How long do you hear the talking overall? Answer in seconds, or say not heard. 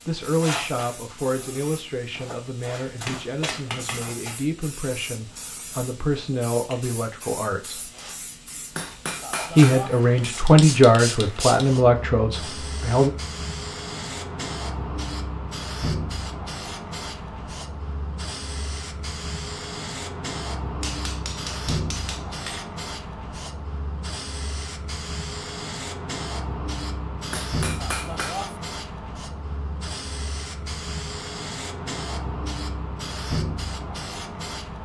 11 s.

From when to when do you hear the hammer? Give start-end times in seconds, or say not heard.
3.0-4.1, 8.7-10.0, 20.8-22.7, 27.3-28.6.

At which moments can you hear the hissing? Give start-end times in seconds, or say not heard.
0.0-34.8.